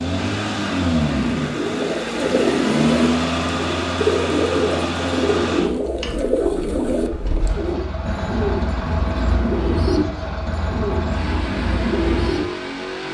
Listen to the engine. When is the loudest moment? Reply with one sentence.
The volume of the engine peaks at 3 seconds.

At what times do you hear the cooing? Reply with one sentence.
The cooing can be heard from 1.4 to 12.4 s.